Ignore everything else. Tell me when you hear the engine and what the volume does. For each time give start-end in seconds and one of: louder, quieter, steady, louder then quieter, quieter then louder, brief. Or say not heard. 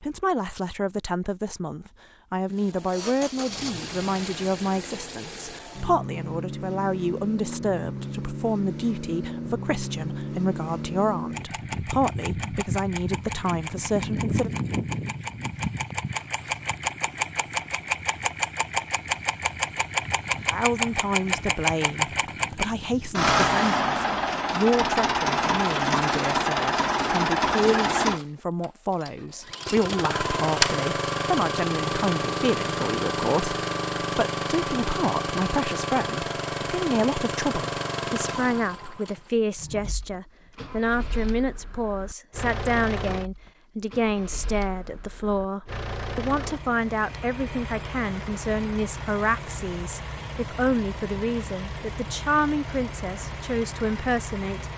2.5-54.7 louder then quieter.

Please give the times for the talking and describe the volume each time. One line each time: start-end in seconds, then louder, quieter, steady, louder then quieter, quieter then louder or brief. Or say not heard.
0.0-14.5 steady
20.5-54.7 steady.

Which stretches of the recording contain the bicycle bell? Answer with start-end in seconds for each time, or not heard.
not heard.